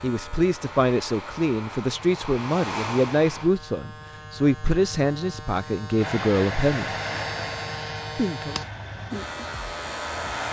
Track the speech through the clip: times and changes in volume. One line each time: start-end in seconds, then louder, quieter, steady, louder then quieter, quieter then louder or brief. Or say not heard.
0.0-7.0 steady
8.2-8.6 brief.